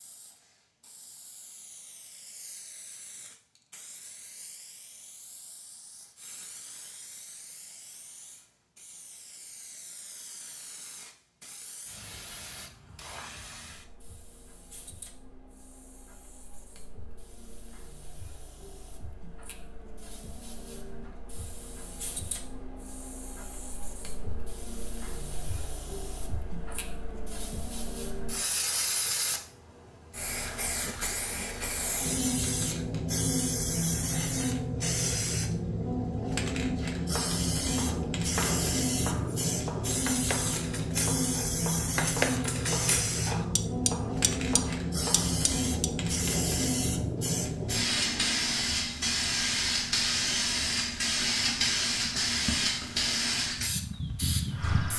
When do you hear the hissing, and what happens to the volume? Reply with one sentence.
You can hear the hissing from 0.0 to 54.9 s, getting louder.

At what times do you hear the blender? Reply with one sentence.
You can't hear the blender here.